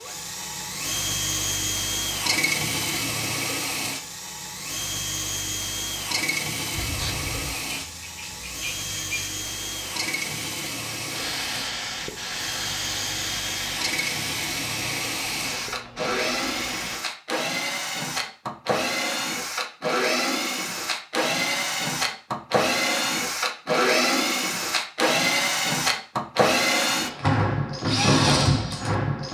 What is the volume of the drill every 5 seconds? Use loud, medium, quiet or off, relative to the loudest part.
medium, medium, medium, medium, loud, loud.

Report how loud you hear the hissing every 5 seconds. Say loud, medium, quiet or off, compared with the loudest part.
off, medium, loud, loud, off, off.